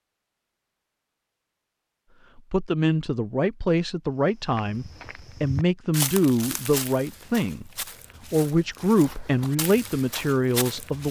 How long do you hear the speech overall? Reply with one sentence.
You can hear the speech for 8 seconds altogether.